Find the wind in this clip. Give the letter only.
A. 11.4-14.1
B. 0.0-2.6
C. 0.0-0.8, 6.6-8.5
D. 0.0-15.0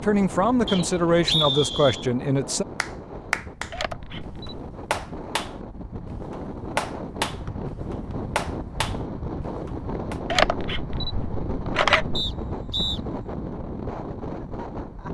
D.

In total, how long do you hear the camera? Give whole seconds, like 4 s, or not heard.
3 s.